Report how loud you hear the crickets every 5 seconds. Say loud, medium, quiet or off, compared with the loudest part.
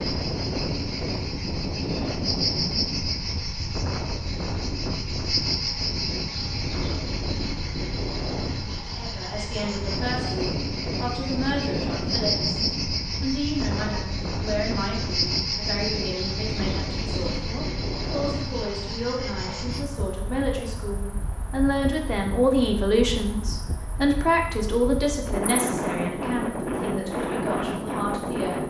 loud, loud, loud, loud, quiet, quiet.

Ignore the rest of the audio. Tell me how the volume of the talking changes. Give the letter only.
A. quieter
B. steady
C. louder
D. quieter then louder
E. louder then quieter
E.